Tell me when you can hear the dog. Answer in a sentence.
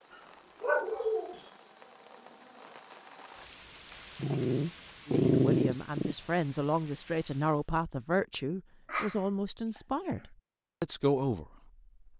The dog can be heard from 0.6 to 1.4 s, from 4.2 to 6.2 s and from 8.8 to 10.2 s.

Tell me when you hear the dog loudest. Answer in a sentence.
The loudest moment of the dog is at 5 seconds.